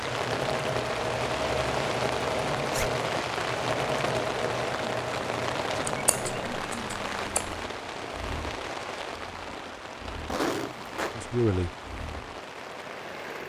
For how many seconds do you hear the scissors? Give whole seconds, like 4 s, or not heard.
2 s.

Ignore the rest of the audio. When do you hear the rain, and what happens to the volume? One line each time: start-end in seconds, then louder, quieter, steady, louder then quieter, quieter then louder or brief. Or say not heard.
0.0-13.4 quieter.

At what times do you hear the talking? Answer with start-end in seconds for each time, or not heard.
11.1-11.7.